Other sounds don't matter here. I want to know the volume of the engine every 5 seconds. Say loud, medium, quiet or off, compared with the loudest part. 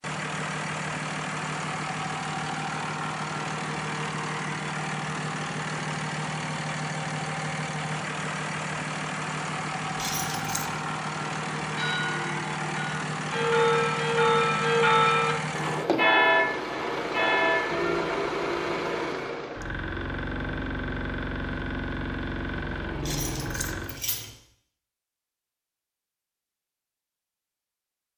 loud, loud, loud, loud, loud, off.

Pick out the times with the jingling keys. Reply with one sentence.
You can hear the jingling keys from 9.9 to 10.7 s and from 23.0 to 24.3 s.